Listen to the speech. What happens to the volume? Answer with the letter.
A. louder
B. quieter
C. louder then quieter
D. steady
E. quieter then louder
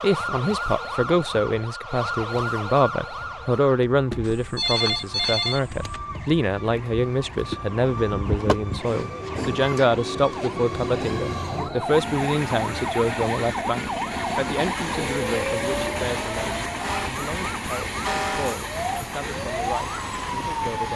B.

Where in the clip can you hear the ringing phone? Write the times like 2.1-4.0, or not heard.
4.5-5.6.